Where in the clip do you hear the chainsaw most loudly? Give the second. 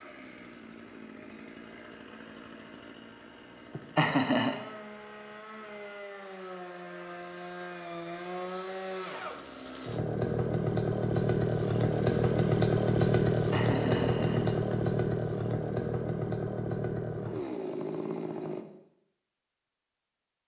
13 s.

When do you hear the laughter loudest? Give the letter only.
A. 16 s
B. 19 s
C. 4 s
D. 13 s
C.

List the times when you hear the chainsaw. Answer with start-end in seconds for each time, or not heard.
0.0-18.6.